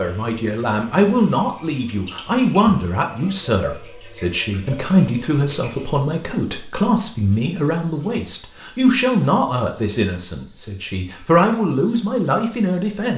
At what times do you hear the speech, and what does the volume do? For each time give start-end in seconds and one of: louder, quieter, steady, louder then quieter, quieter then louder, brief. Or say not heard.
0.0-13.1 steady.